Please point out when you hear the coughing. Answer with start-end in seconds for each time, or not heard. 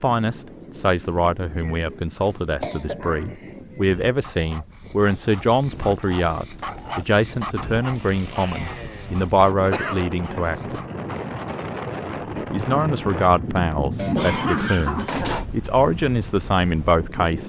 2.6-3.0, 9.7-10.1, 13.9-15.4.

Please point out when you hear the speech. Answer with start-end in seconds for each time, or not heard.
0.0-10.8, 12.5-17.4.